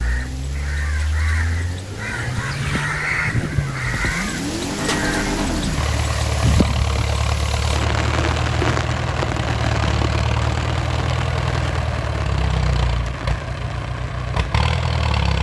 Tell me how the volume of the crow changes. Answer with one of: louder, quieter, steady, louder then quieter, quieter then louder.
louder then quieter.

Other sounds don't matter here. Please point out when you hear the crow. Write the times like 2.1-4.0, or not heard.
0.0-6.7.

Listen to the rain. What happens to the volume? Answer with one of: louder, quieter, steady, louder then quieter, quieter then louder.
louder then quieter.